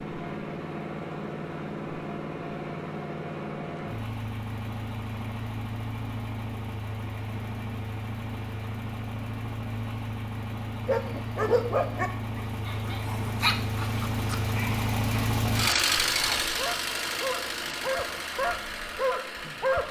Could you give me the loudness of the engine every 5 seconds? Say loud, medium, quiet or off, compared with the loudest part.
medium, medium, loud, loud.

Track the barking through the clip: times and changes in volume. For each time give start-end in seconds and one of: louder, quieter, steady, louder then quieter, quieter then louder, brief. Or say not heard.
10.8-19.8 quieter then louder.